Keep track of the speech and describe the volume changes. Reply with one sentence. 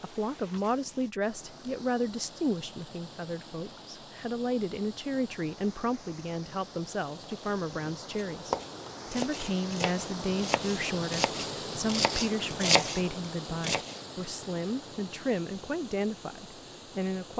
The volume of the speech stays about the same.